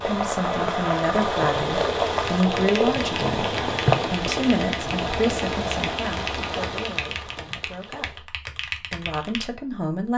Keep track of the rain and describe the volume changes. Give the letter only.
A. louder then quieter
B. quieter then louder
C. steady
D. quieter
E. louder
D.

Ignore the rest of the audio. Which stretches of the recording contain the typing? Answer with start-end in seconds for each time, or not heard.
2.0-9.5.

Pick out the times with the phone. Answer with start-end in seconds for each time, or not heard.
not heard.